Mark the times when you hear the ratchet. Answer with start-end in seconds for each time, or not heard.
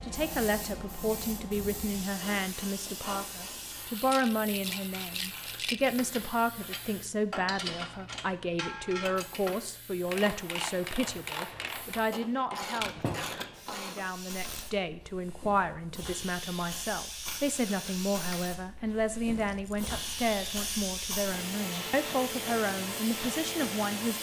6.1-14.7.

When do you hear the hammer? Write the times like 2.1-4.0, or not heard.
not heard.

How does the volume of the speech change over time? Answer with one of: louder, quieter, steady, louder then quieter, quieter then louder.
steady.